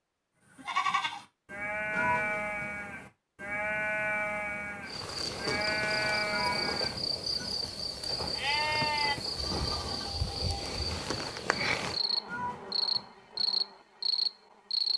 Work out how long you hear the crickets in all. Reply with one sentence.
You can hear the crickets for 10 seconds altogether.